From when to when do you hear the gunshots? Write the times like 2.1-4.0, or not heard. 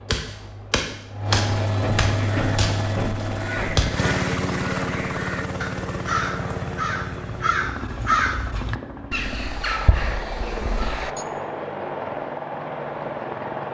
0.1-4.0.